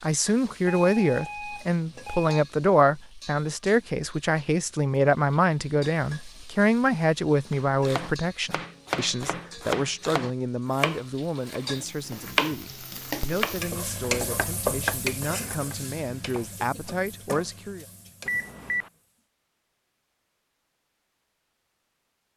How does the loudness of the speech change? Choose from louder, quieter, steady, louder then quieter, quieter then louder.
quieter.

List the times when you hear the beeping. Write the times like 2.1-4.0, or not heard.
0.7-2.4, 18.2-18.9.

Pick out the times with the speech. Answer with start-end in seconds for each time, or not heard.
0.0-17.9.